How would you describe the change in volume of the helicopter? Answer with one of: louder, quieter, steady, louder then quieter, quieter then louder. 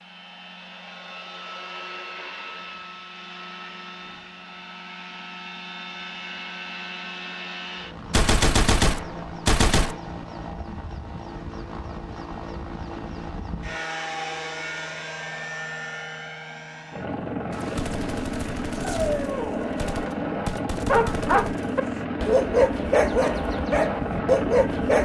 louder.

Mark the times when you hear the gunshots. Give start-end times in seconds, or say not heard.
8.1-9.9, 17.5-21.9.